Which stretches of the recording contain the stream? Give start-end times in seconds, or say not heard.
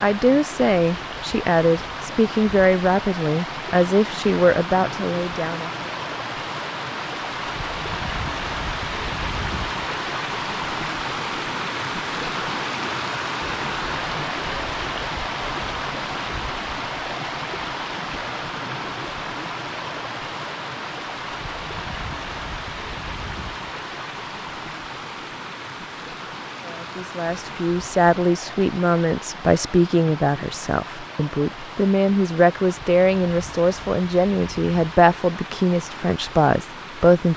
0.0-37.3.